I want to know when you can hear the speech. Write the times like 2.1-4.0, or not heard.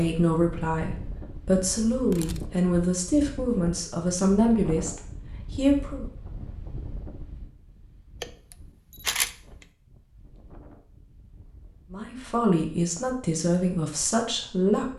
0.0-6.0, 11.9-14.8.